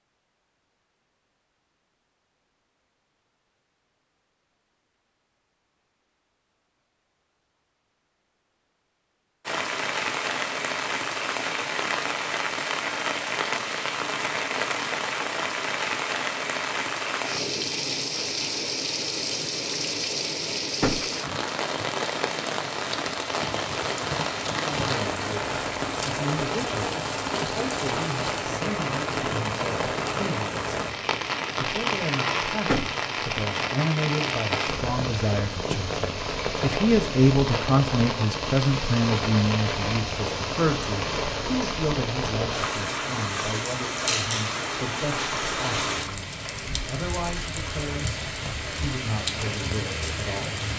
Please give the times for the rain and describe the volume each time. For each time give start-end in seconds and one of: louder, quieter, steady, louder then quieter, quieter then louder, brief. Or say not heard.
9.4-50.7 steady.